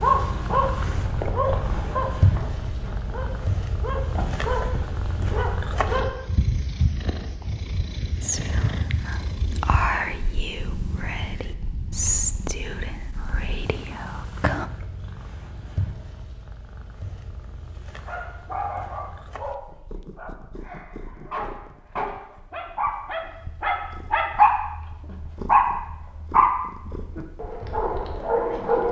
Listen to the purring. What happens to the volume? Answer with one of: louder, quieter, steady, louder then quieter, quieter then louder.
quieter.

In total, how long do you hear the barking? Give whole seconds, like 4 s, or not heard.
17 s.